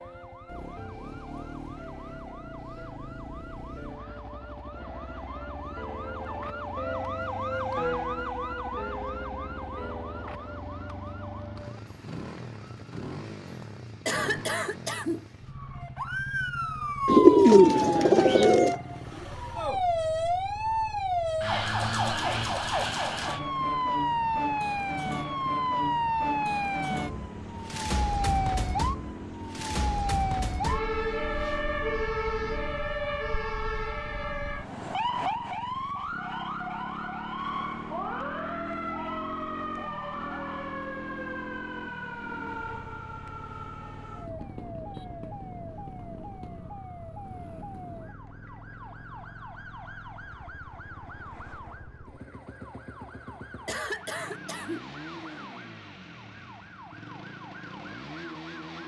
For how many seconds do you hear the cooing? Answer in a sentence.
The cooing can be heard for 2 seconds in total.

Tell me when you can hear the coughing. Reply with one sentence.
The coughing can be heard from 14.1 to 15.2 s and from 53.6 to 54.9 s.